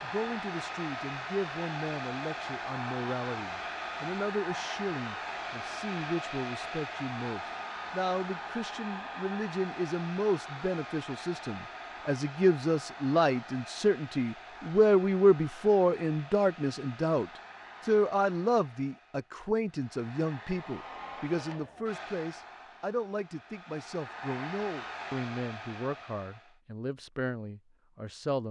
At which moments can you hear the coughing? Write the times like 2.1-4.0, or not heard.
not heard.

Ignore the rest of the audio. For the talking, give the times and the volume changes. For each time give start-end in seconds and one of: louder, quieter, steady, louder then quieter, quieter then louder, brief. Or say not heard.
0.0-28.4 louder then quieter.